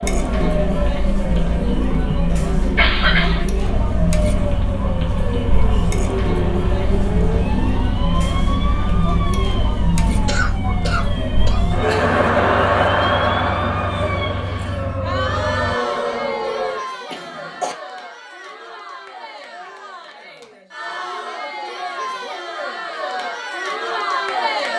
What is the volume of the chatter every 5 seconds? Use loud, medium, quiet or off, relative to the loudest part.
loud, loud, loud, medium, medium.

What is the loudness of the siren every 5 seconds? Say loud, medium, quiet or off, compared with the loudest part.
medium, medium, medium, loud, off.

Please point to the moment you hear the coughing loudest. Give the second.
3 s.